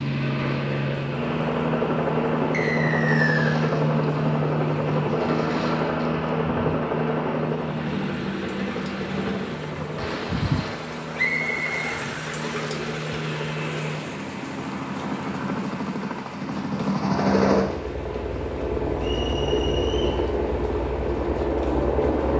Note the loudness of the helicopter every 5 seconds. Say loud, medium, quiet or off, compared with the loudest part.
loud, loud, medium, loud, loud.